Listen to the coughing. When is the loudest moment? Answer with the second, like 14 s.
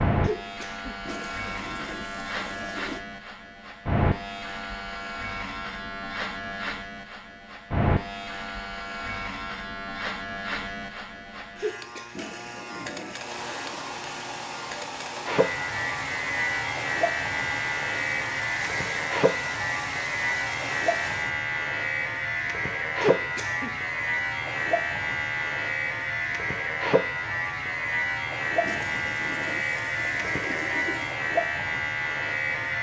23 s.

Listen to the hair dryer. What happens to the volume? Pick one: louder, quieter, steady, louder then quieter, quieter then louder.
steady.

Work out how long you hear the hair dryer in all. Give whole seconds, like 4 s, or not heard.
8 s.